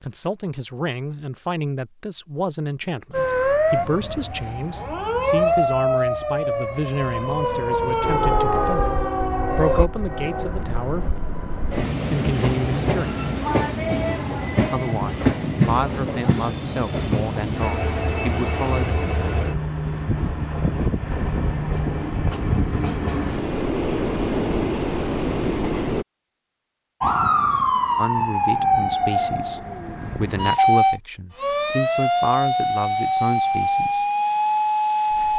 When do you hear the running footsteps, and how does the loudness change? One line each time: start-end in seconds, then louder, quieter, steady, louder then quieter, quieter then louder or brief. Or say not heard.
not heard.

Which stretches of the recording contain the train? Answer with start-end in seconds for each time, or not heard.
8.0-26.1.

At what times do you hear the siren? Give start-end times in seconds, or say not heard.
3.1-9.9, 27.0-35.3.